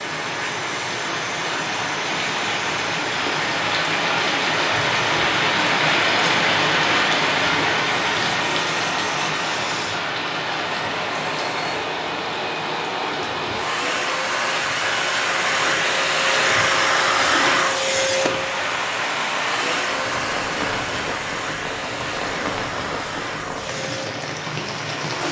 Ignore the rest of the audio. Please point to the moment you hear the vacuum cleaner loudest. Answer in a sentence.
The volume of the vacuum cleaner peaks at 17 seconds.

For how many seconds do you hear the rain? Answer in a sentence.
The rain can be heard for 25 seconds in total.